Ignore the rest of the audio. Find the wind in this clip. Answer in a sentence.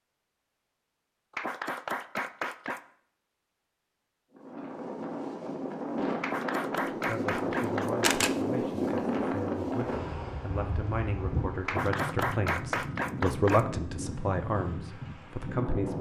The wind can be heard from 4.3 to 15.9 s.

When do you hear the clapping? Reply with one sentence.
You can hear the clapping from 1.3 to 2.8 s, from 6.2 to 8.2 s and from 11.7 to 13.7 s.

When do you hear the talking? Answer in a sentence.
The talking can be heard from 7.0 to 15.9 s.